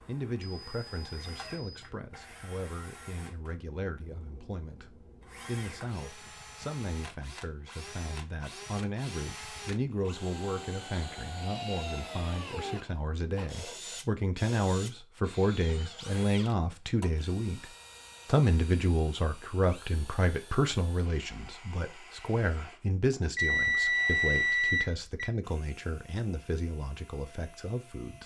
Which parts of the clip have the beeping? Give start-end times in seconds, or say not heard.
0.5-1.9, 23.4-25.3.